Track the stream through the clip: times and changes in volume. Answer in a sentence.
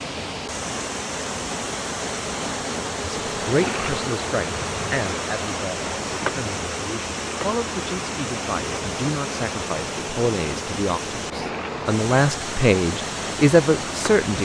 The stream can be heard from 0.0 to 14.3 s, at a steady volume.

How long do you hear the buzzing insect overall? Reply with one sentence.
You can hear the buzzing insect for 14 seconds altogether.